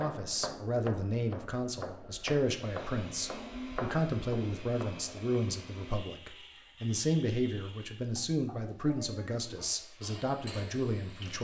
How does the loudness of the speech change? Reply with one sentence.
The volume of the speech stays about the same.